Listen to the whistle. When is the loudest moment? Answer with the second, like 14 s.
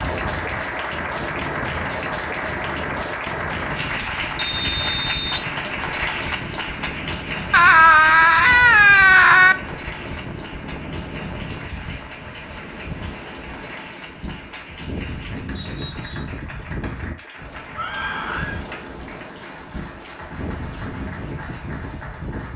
5 s.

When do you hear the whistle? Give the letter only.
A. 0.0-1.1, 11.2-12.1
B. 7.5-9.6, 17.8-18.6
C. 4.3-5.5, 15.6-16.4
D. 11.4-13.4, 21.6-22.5
C.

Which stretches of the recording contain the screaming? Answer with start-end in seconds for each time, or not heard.
7.5-9.6, 17.8-18.6.